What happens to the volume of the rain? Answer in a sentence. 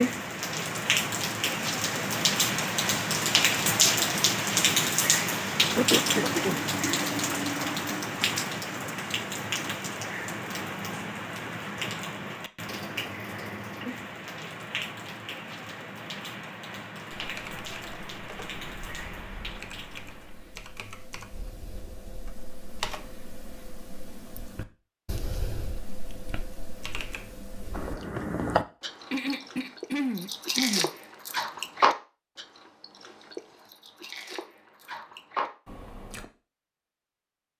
The volume of the rain goes down.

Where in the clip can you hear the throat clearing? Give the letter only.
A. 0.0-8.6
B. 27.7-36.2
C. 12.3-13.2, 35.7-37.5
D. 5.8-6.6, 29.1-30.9
D.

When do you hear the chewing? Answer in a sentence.
The chewing can be heard from 27.7 to 36.2 s.